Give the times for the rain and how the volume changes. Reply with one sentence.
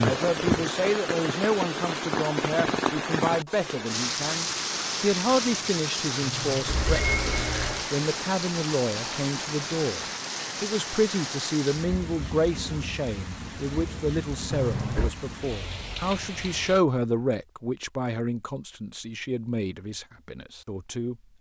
You can hear the rain from 0.0 to 16.8 s, getting quieter.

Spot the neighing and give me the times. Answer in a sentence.
You can hear the neighing from 6.2 to 7.8 s and from 14.5 to 15.1 s.